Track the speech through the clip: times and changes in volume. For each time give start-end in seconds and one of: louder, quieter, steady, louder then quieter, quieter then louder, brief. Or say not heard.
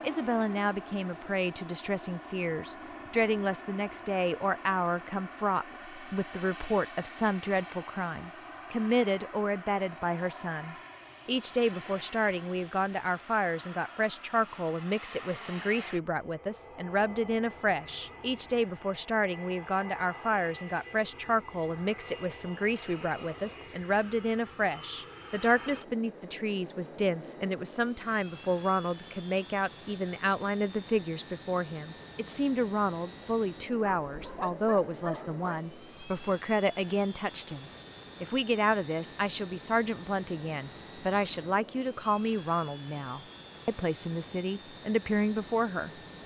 0.0-46.2 steady.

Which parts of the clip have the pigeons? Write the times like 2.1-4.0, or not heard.
not heard.